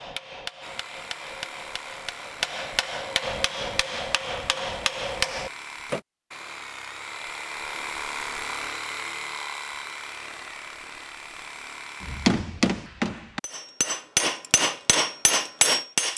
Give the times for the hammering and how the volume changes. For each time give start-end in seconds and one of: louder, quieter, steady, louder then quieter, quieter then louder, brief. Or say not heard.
0.0-6.0 louder
12.0-16.1 quieter then louder.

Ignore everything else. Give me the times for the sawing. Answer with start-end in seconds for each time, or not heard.
0.6-12.3.